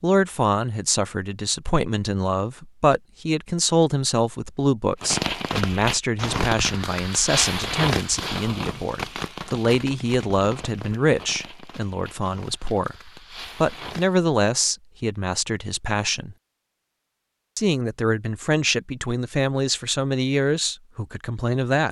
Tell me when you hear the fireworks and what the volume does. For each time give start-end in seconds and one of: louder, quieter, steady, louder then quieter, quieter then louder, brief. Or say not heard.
5.0-14.2 quieter.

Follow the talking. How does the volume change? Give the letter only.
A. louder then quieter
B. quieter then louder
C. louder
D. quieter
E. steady
E.